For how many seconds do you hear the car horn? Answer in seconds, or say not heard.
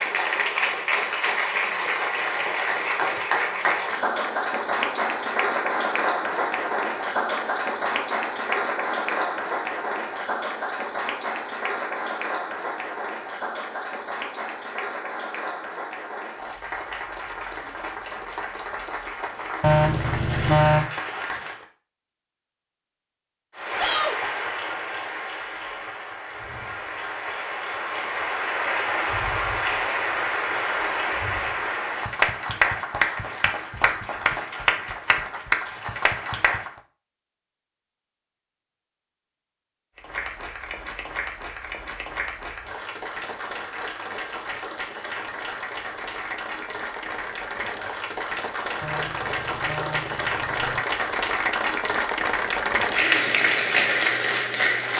3 s.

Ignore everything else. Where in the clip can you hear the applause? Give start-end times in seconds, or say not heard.
0.0-21.6, 23.6-36.8, 40.0-54.9.